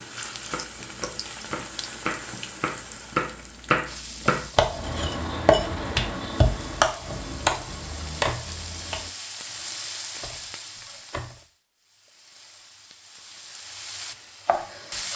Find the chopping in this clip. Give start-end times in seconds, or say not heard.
0.4-9.1.